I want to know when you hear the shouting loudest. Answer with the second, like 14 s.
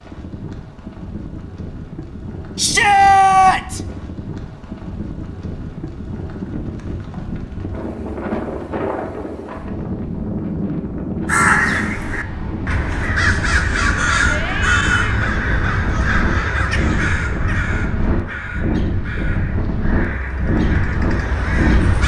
3 s.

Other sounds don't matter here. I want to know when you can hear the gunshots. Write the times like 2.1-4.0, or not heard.
not heard.